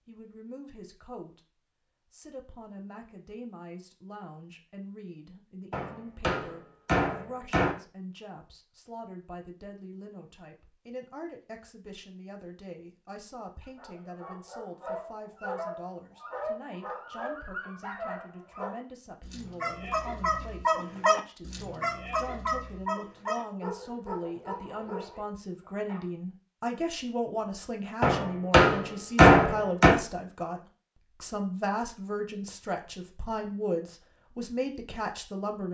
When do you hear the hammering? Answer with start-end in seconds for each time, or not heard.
5.7-7.8, 28.0-29.9.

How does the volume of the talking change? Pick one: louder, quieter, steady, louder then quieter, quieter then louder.
louder.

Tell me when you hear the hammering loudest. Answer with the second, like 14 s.
29 s.